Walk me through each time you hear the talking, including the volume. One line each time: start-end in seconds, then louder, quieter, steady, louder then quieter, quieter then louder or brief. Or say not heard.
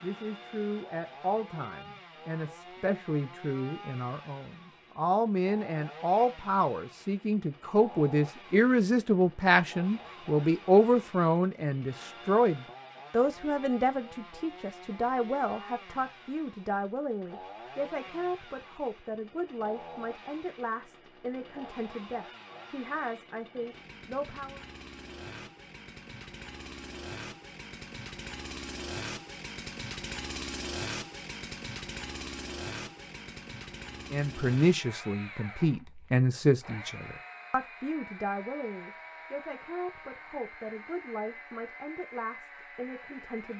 0.0-24.6 louder then quieter
34.1-43.5 quieter.